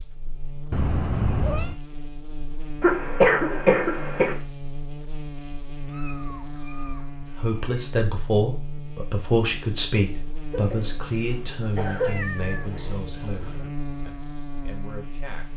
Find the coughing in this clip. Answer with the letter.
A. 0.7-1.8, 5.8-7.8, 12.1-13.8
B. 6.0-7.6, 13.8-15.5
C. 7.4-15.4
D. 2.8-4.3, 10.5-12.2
D.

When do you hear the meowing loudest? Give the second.
1 s.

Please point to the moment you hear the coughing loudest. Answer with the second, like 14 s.
3 s.